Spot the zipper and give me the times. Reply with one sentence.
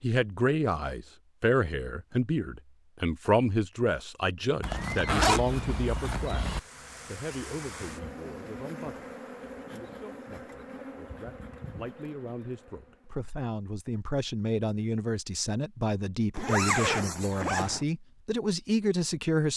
You can hear the zipper from 4.6 to 6.6 s and from 16.3 to 17.9 s.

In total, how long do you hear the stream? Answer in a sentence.
The stream can't be heard in this clip.